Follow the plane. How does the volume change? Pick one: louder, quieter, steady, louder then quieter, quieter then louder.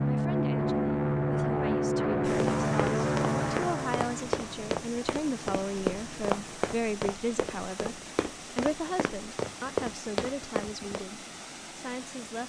quieter.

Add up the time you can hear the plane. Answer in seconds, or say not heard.
7 s.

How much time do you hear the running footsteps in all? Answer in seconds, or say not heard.
9 s.